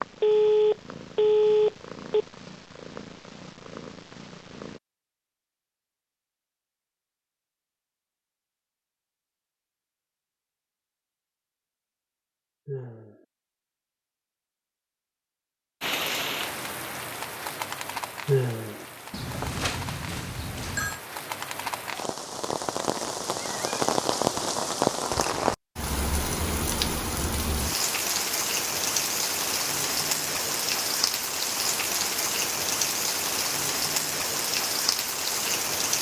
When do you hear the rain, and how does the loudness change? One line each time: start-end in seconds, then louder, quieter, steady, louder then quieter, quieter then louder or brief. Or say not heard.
15.8-35.9 louder.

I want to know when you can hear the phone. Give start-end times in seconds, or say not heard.
0.2-2.2, 19.1-21.0.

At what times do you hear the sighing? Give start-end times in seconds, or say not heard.
12.7-13.2, 18.2-18.9.